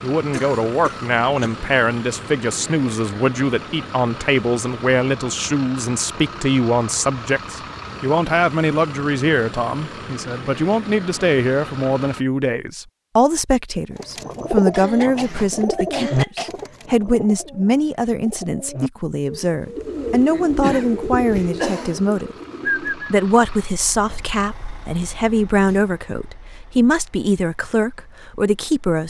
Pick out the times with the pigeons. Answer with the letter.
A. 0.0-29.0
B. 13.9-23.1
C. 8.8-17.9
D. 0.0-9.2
B.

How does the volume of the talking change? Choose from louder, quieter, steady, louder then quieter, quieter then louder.
steady.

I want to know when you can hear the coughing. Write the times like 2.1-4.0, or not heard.
0.3-1.6, 14.7-16.5, 20.3-22.1.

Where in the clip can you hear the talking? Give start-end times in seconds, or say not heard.
0.0-29.0.